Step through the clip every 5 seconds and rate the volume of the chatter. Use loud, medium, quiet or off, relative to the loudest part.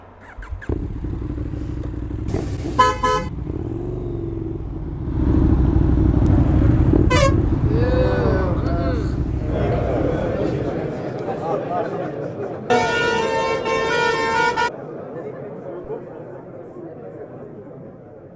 off, loud, loud, medium.